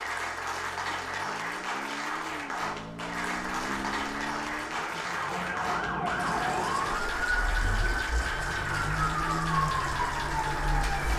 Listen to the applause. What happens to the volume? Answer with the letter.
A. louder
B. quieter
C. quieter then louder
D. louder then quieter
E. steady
E.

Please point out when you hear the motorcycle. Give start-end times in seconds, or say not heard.
0.0-5.1.